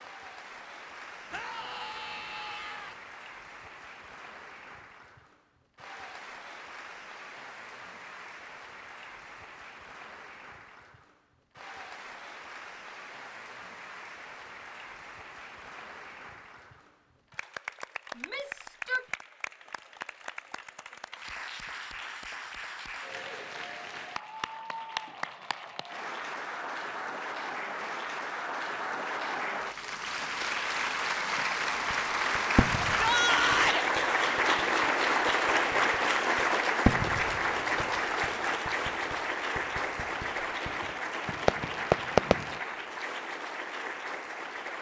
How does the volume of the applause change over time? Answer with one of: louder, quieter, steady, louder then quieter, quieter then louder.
louder.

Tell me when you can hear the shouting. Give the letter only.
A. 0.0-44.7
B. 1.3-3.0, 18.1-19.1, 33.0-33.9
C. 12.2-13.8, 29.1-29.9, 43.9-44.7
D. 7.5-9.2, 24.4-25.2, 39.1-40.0
B.